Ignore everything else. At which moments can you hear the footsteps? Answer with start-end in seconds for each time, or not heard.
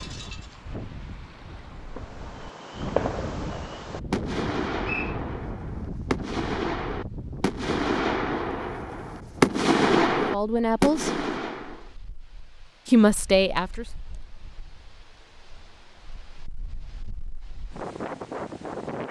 not heard.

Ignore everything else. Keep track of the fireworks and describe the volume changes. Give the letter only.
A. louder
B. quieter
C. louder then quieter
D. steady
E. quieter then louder
A.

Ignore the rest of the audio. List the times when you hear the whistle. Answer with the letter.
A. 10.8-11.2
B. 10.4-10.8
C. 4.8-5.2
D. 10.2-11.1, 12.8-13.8
C.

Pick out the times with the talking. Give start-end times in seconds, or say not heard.
10.2-11.1, 12.8-13.8.